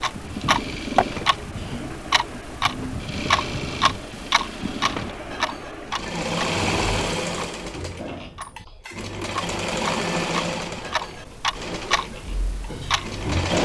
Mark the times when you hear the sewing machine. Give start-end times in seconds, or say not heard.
0.0-13.5.